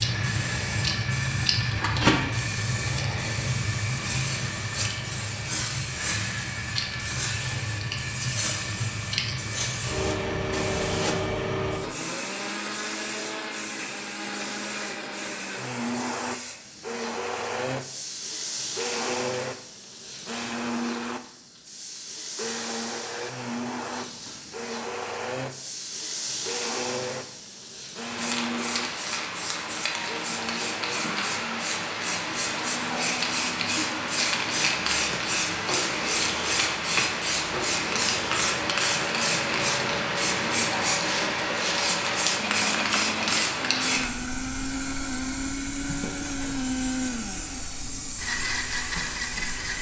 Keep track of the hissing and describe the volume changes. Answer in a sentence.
The loudness of the hissing goes down, then up.